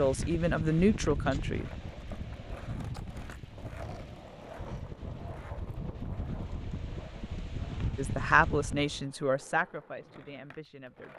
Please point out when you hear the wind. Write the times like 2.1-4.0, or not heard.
0.0-9.1.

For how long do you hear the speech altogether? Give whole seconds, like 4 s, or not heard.
5 s.